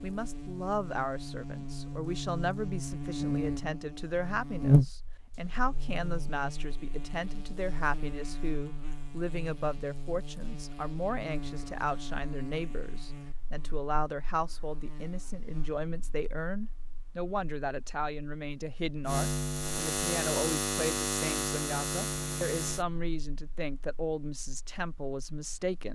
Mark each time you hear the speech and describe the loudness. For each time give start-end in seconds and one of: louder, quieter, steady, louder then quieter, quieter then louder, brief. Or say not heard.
0.0-25.8 steady.